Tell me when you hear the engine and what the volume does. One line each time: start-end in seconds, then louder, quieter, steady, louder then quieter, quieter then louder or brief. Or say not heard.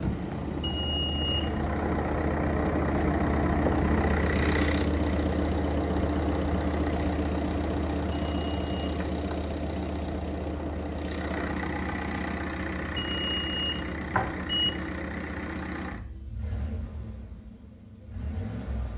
0.0-18.9 quieter.